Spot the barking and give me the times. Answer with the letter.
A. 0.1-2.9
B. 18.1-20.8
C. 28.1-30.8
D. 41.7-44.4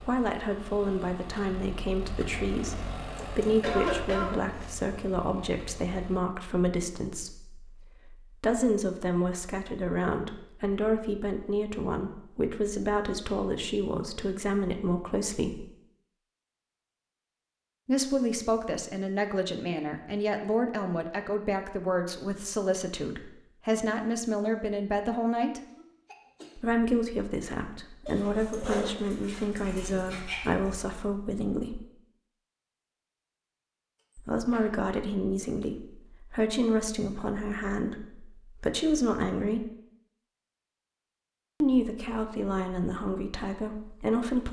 C.